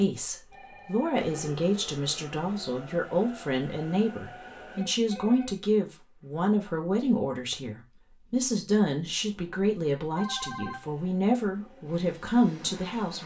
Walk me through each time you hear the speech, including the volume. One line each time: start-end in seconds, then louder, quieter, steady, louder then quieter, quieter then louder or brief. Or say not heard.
0.0-13.2 steady.